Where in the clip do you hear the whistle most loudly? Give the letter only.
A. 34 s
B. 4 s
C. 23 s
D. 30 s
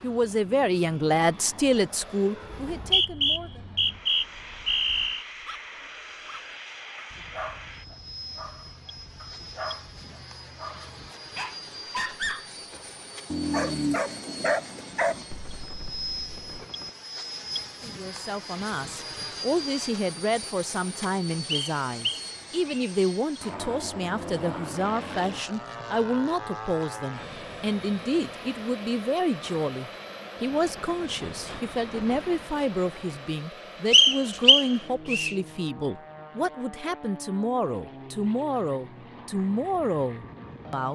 A.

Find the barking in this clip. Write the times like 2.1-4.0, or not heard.
5.2-16.6.